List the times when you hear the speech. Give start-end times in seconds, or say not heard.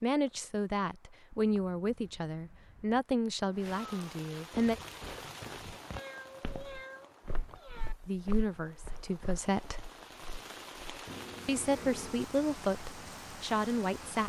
0.0-4.8, 8.1-9.8, 11.4-14.2.